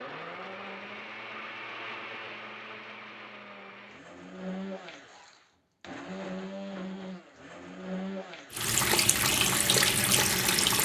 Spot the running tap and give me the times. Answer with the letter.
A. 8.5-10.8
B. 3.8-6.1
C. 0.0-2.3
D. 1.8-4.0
A.